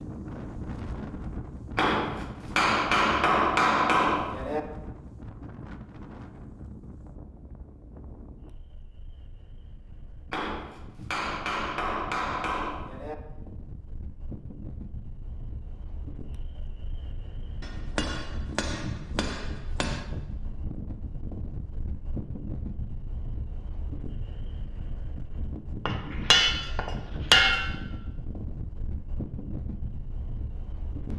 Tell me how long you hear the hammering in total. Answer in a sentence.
The hammering can be heard for 10 seconds in total.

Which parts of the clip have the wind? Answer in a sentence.
You can hear the wind from 0.0 to 31.1 s.